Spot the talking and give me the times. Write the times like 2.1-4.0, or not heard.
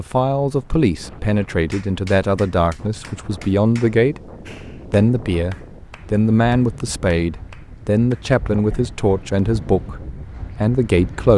0.0-4.2, 4.9-11.3.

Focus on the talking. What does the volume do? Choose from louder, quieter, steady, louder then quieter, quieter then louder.
steady.